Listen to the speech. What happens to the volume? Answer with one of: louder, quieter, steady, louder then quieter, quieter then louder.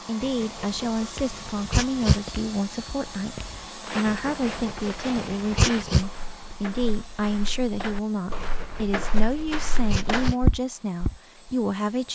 steady.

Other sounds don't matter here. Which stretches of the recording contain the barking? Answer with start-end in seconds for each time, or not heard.
0.2-2.2, 4.0-6.0, 8.3-10.3.